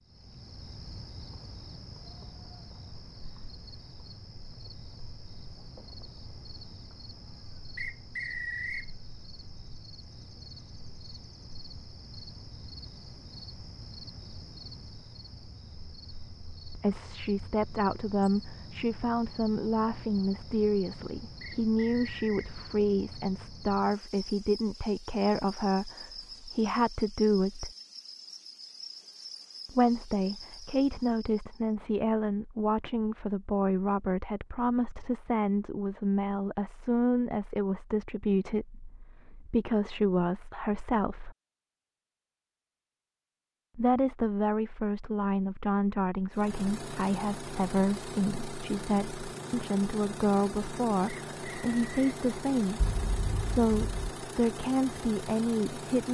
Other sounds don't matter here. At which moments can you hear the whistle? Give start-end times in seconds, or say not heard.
7.8-8.9, 21.4-22.5, 51.0-52.0.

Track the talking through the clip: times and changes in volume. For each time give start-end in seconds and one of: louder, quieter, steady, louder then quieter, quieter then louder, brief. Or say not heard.
16.8-27.7 steady
29.6-41.4 steady
43.8-56.0 steady.